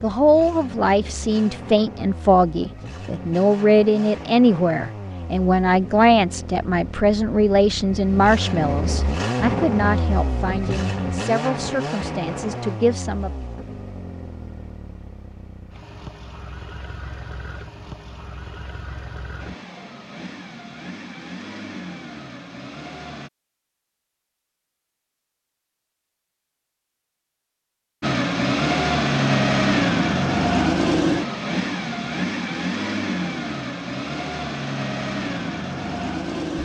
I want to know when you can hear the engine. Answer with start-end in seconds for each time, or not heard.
0.0-23.3, 28.0-36.6.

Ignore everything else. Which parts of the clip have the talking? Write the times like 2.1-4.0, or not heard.
0.0-13.3.